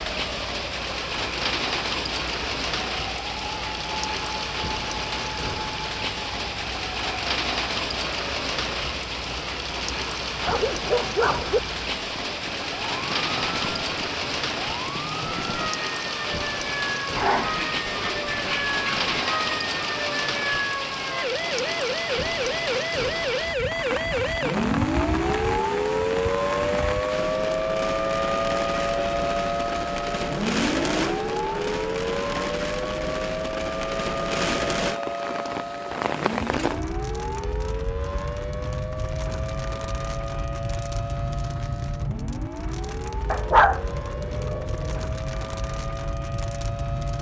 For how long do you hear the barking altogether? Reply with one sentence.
You can hear the barking for 5 seconds altogether.